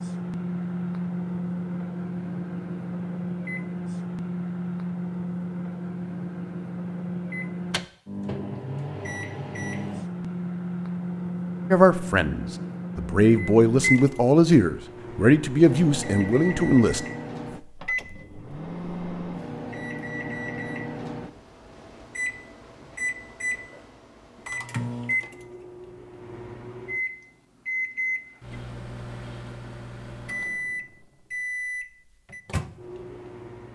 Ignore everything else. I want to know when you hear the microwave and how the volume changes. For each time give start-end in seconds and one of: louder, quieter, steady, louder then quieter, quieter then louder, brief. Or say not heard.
0.0-33.6 steady.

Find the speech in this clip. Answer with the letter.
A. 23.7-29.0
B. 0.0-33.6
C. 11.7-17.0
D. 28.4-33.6
C.